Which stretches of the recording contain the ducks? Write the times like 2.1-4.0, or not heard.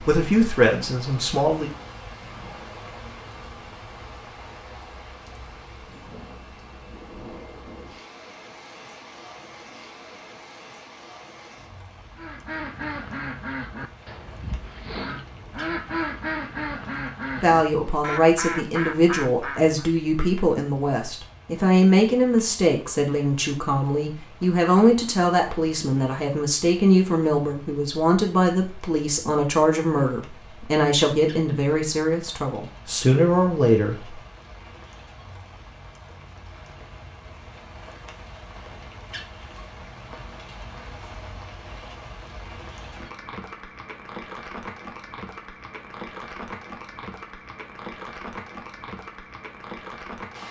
12.2-19.9.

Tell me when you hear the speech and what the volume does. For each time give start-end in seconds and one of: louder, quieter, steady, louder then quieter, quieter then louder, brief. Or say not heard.
0.0-1.7 brief
17.4-34.2 steady.